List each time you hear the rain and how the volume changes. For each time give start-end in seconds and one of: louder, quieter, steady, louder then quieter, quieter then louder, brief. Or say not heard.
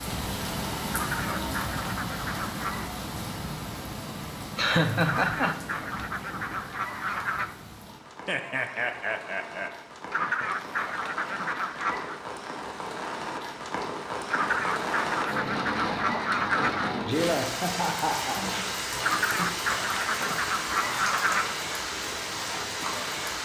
0.0-23.4 quieter then louder.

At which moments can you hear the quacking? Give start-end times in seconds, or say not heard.
0.9-2.9, 5.0-7.5, 10.1-12.2, 14.3-17.0, 19.0-21.6.